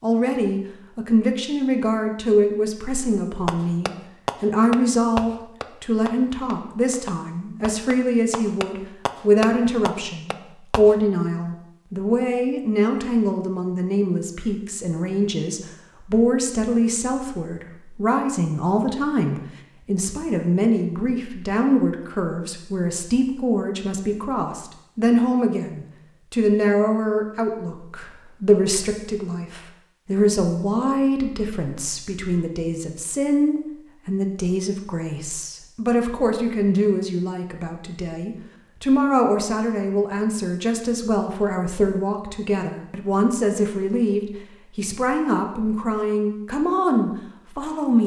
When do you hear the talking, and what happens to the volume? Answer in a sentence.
You can hear the talking from 0.0 to 48.0 s, at a steady volume.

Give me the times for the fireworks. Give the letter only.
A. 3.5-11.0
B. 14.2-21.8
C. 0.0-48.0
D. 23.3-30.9
A.